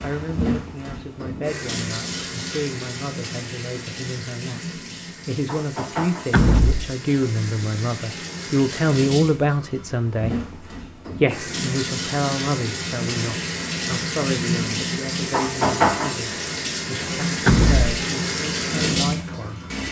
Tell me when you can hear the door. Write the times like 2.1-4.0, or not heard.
6.3-7.0, 17.4-17.9.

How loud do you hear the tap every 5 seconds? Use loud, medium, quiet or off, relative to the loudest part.
medium, medium, loud, loud.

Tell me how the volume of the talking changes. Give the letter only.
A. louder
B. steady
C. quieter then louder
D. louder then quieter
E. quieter
D.